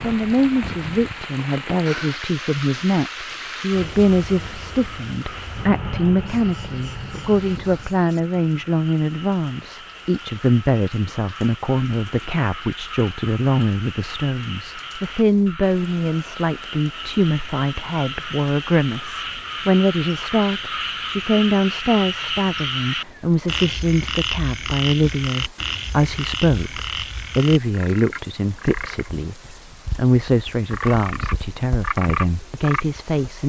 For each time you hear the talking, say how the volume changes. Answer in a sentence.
The talking can be heard from 0.0 to 33.4 s, at a steady volume.